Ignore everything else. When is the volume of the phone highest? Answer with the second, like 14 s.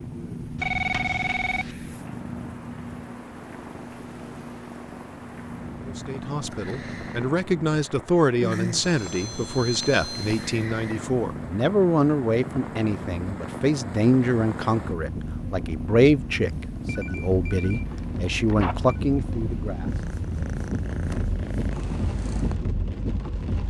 1 s.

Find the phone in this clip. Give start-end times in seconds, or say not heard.
0.6-1.8, 8.8-10.6, 16.9-18.9.